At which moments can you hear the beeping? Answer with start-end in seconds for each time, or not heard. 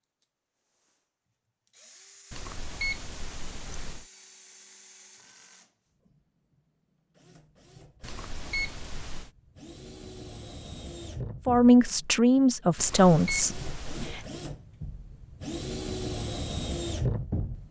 2.3-4.0, 8.0-9.3, 12.8-14.3.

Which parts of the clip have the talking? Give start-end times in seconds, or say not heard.
11.4-14.2.